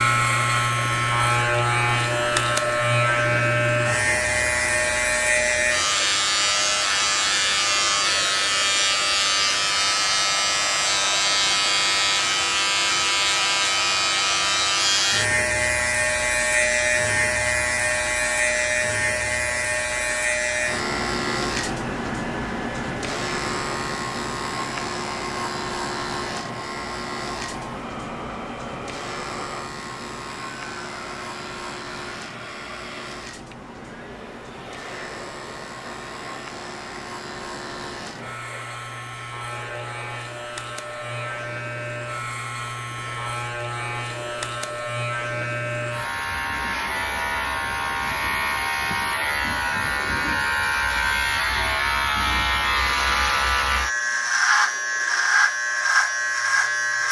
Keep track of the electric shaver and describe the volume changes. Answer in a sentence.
The loudness of the electric shaver goes down, then up.